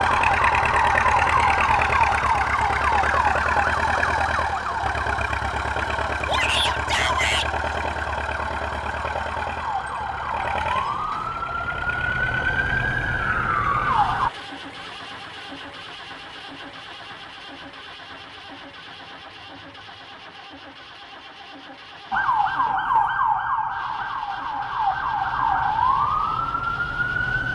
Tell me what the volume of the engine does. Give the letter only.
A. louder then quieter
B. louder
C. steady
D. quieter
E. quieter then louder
D.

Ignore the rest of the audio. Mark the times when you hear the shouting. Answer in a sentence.
The shouting can be heard from 6.2 to 7.5 s.